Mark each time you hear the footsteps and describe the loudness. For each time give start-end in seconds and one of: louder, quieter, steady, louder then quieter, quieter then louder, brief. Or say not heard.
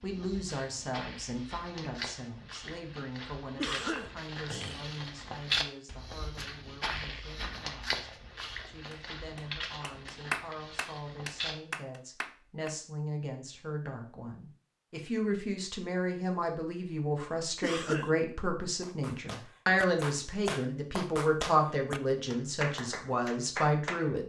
0.0-11.6 louder then quieter.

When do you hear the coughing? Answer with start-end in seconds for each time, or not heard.
3.5-5.0, 17.6-18.1.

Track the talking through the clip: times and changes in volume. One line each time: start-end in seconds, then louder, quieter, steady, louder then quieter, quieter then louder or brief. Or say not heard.
0.0-24.2 quieter then louder.